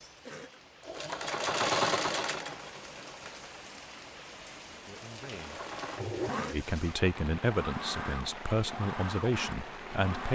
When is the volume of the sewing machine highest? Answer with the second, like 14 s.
2 s.